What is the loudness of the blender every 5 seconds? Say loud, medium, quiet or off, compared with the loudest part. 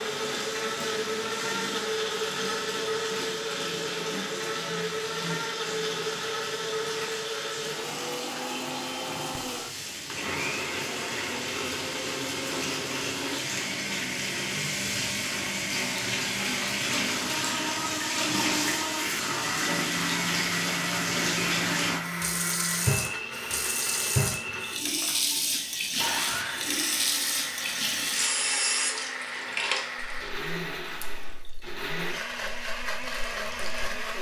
loud, loud, loud, loud, loud, medium, loud.